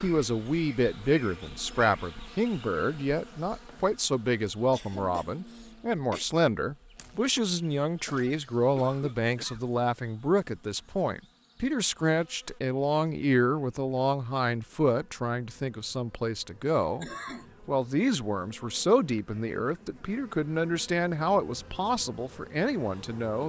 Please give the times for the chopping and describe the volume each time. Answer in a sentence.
The chopping can't be heard in this clip.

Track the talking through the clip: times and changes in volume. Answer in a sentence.
The talking can be heard from 0.0 to 23.4 s, at a steady volume.